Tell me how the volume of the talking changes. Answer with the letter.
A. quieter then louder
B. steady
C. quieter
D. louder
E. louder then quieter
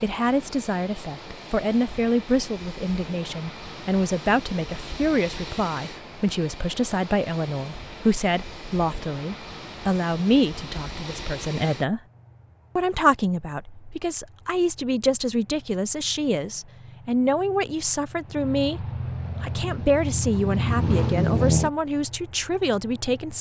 B.